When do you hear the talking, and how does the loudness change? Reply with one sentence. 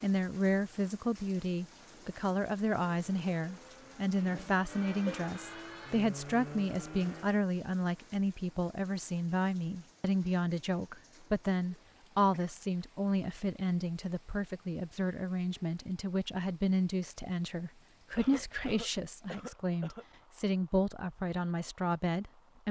The talking can be heard from 0.0 to 22.6 s, at a steady volume.